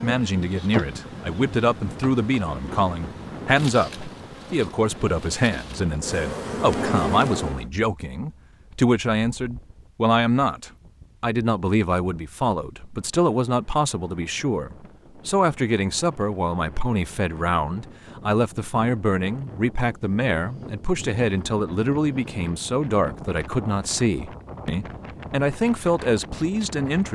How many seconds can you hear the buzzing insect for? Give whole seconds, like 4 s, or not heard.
8 s.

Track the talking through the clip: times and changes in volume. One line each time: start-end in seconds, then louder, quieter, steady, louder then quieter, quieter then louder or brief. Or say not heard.
0.0-27.1 steady.